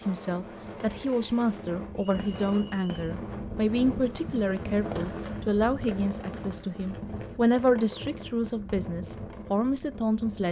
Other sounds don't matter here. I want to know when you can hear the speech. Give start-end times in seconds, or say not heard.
0.1-10.4.